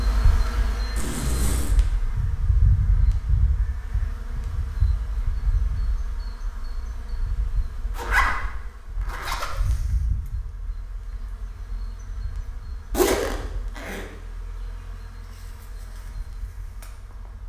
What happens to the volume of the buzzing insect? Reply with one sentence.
The volume of the buzzing insect goes down.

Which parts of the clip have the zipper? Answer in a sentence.
You can hear the zipper from 0.9 to 1.8 s, from 8.0 to 9.8 s and from 12.9 to 14.1 s.